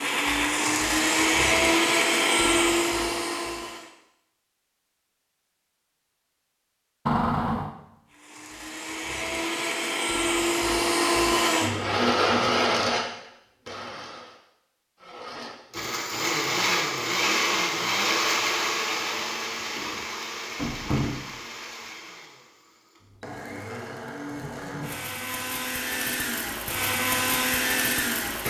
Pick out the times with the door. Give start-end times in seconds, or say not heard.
7.0-7.7, 19.8-21.3.